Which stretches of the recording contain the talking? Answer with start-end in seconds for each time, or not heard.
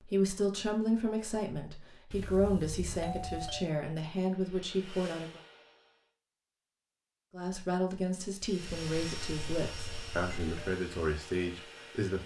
0.0-5.4, 7.3-12.2.